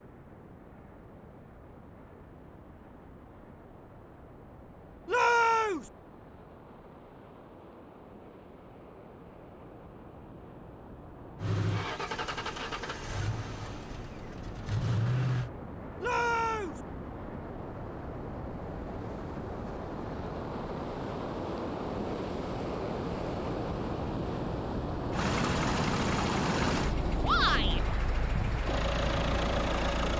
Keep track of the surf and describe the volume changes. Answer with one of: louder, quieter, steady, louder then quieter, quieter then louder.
louder.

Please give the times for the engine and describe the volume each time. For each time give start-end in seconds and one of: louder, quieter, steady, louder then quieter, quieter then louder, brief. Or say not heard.
11.4-15.5 quieter then louder
25.1-30.1 quieter then louder.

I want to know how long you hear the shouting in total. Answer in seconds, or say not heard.
2 s.